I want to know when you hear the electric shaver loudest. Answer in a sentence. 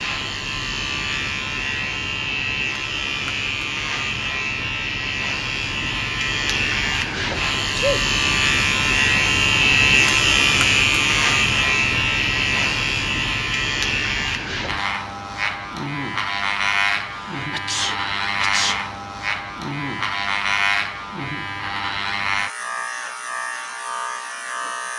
The volume of the electric shaver peaks at 10 seconds.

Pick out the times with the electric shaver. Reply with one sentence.
The electric shaver can be heard from 0.0 to 24.9 s.